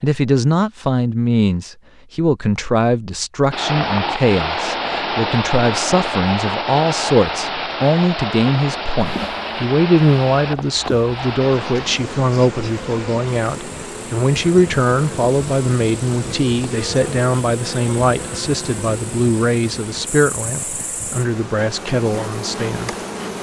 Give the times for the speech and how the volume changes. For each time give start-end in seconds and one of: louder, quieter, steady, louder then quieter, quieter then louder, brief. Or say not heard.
0.0-22.9 steady.